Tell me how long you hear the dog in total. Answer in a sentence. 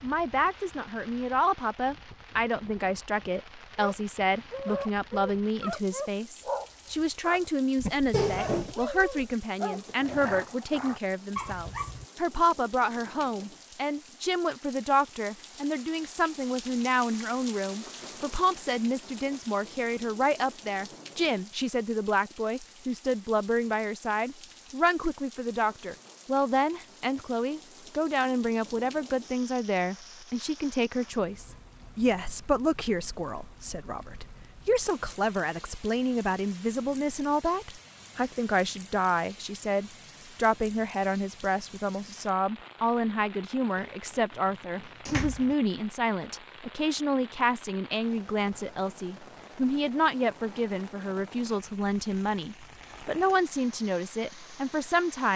The dog can be heard for 8 seconds in total.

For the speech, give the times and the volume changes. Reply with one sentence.
The speech can be heard from 0.0 to 55.3 s, at a steady volume.